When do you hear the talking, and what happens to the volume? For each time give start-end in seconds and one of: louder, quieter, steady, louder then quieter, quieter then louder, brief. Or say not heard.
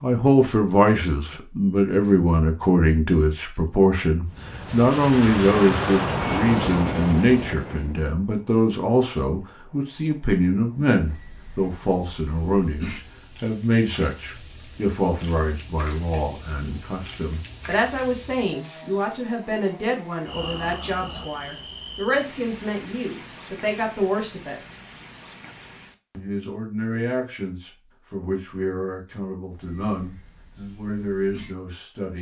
0.0-24.6 quieter
26.1-32.1 steady.